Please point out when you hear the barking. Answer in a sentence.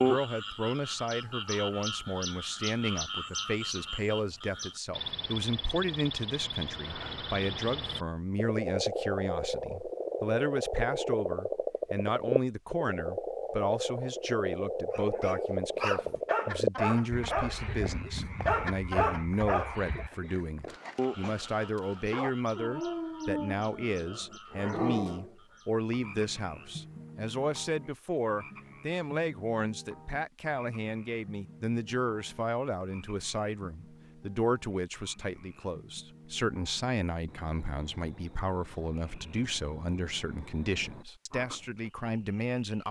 The barking can be heard from 14.9 to 25.3 s.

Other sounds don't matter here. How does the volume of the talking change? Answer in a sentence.
The volume of the talking stays about the same.